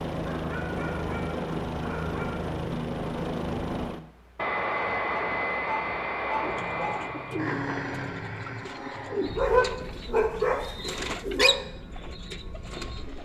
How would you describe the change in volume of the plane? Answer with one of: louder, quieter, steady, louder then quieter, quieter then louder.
quieter.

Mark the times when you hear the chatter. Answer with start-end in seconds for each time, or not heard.
not heard.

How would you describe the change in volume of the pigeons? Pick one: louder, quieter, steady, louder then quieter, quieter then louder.
louder then quieter.